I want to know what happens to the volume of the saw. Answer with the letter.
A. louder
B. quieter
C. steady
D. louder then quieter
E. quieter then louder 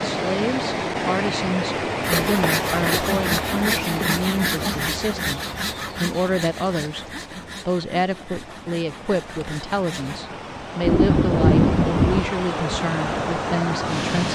B.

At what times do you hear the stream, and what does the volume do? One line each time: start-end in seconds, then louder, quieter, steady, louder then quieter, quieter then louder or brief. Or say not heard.
0.0-14.2 quieter then louder.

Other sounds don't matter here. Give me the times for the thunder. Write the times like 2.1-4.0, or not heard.
10.8-12.2.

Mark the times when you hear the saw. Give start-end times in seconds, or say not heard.
2.0-10.2.